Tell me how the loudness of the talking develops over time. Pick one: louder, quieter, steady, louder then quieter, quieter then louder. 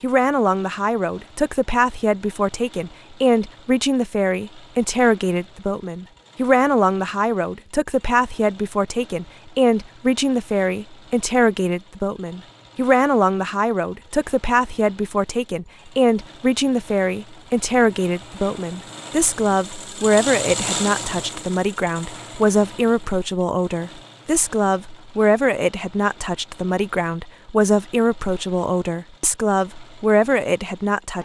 steady.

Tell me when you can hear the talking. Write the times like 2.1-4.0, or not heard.
0.0-31.2.